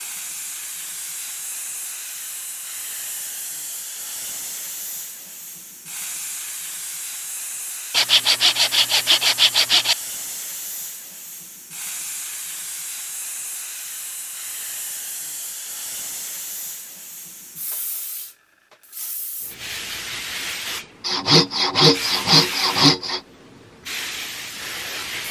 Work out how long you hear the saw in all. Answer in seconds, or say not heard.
4 s.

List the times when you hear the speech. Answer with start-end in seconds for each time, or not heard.
not heard.